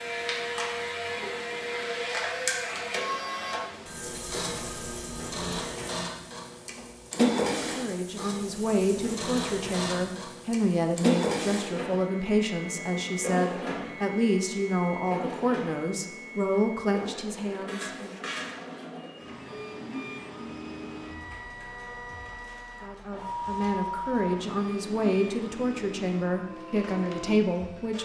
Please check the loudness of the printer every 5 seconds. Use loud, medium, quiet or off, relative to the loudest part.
loud, loud, loud, medium, medium, medium.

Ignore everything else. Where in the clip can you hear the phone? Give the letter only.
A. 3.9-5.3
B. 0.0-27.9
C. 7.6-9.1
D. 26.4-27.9
A.